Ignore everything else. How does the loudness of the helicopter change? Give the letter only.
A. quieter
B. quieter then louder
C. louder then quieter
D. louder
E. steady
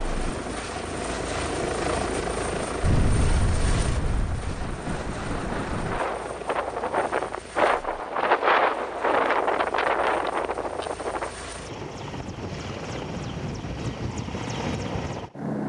B.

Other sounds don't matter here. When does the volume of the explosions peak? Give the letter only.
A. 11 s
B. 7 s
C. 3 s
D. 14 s
C.